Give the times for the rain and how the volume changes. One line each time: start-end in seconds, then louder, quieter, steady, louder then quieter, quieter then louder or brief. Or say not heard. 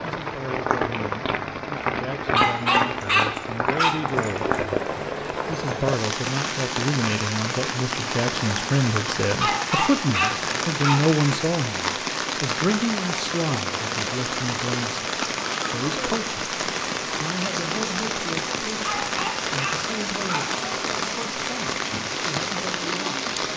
0.0-23.5 steady.